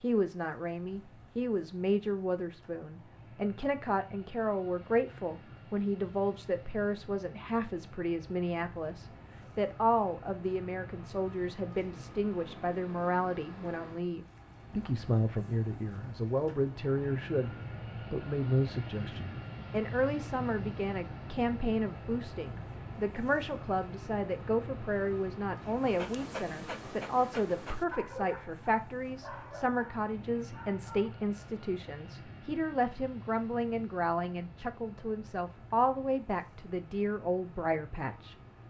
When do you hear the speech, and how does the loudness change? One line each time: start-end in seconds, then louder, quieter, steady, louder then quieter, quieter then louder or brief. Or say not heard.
0.0-38.4 steady.